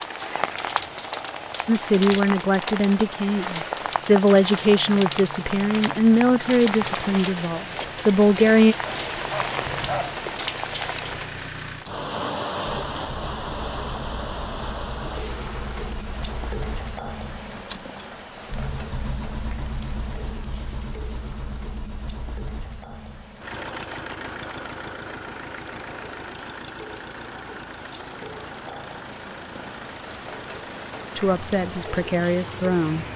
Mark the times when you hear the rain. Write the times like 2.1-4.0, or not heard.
0.0-33.1.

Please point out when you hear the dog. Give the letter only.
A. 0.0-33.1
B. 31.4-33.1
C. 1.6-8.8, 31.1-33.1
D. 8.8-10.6
D.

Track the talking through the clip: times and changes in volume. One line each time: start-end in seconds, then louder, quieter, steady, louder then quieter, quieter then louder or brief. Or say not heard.
1.6-8.8 steady
31.1-33.1 brief.